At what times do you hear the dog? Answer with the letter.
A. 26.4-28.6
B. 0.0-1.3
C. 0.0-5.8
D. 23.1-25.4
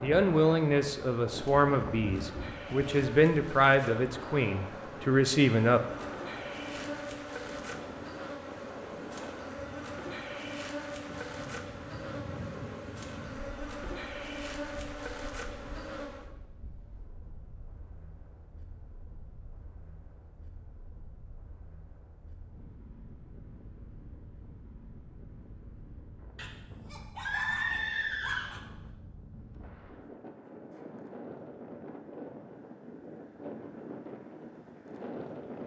A.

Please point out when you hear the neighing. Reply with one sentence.
You can hear the neighing from 27.2 to 28.6 s.